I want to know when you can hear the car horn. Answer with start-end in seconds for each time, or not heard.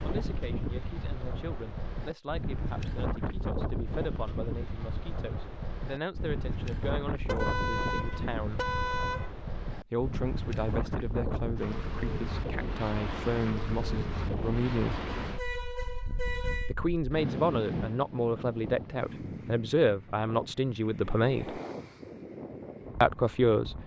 7.2-9.3, 15.2-16.8.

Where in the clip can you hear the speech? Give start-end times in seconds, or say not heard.
0.0-8.7, 9.9-15.1, 16.6-21.6, 23.0-23.8.